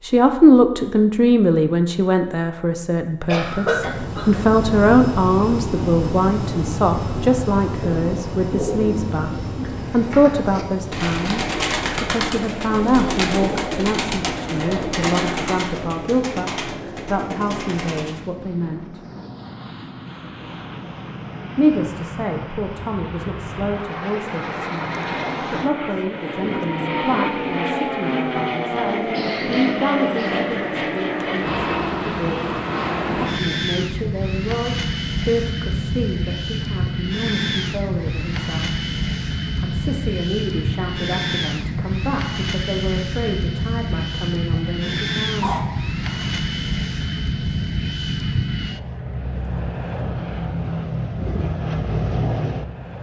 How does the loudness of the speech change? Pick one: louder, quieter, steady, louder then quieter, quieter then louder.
quieter.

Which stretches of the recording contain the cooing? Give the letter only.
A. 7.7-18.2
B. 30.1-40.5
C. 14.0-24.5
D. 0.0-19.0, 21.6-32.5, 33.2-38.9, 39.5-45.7
A.